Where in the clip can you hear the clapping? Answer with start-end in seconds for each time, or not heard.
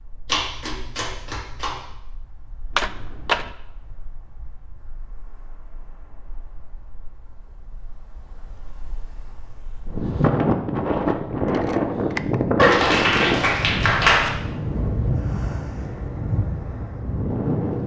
0.2-1.8, 12.6-14.3.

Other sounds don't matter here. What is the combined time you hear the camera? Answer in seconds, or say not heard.
2 s.